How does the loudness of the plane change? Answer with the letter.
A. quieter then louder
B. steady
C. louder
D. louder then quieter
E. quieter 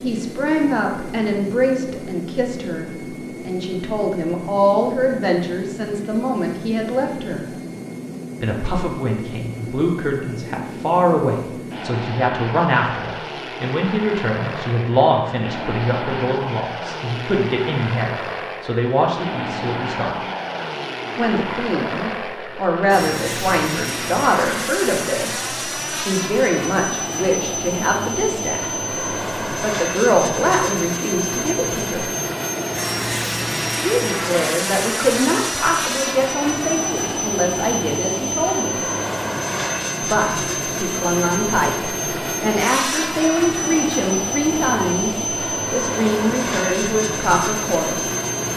C.